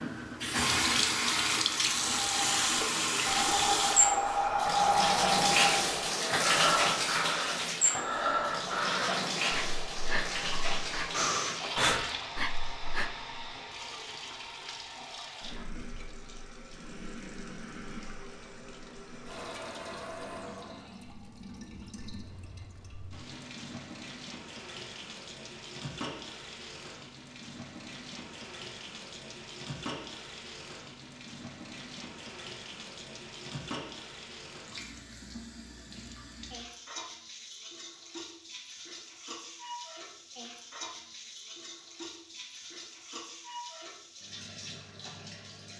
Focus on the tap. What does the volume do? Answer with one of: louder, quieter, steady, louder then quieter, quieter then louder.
quieter.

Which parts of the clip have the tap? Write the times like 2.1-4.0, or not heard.
0.0-45.7.